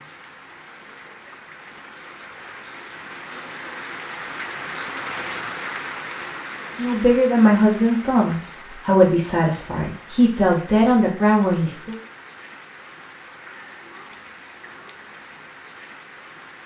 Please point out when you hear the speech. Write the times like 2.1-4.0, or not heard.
6.8-11.9.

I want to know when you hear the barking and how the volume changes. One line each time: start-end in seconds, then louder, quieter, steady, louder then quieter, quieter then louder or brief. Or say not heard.
not heard.